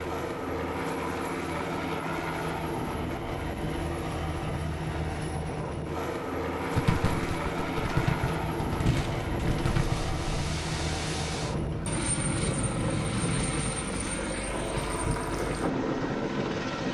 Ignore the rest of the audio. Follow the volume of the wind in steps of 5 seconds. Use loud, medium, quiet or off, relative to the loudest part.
off, loud, loud, loud.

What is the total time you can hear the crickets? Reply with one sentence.
You can't hear the crickets here.